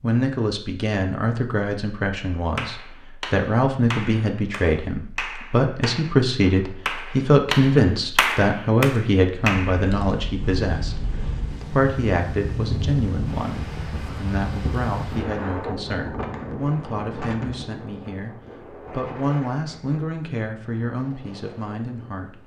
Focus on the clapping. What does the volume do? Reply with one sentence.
The loudness of the clapping goes up.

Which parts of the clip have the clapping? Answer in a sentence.
The clapping can be heard from 2.5 to 9.9 s.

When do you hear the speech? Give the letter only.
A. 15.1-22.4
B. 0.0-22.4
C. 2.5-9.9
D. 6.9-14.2
B.